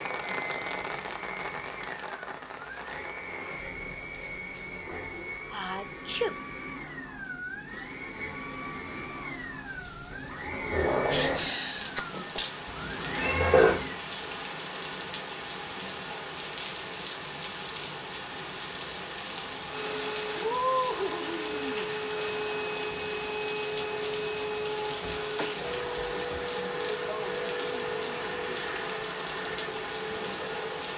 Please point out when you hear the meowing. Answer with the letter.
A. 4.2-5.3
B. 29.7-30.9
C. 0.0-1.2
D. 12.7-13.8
D.